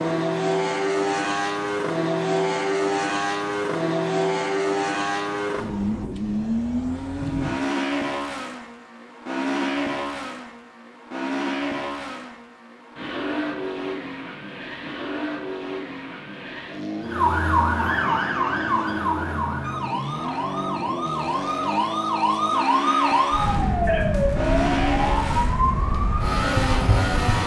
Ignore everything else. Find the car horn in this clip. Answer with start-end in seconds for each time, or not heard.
not heard.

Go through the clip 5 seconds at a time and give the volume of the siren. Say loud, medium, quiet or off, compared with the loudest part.
off, off, off, loud, loud, loud.